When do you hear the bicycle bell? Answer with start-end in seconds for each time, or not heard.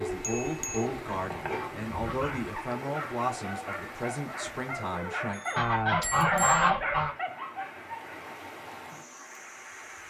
0.2-0.8, 5.3-6.7.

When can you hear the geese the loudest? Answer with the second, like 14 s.
7 s.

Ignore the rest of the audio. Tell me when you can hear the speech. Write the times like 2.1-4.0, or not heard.
0.0-5.4.